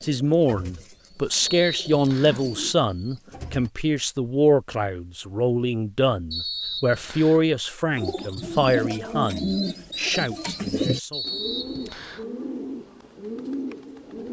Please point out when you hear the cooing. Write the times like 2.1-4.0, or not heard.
0.0-3.7, 8.0-14.2.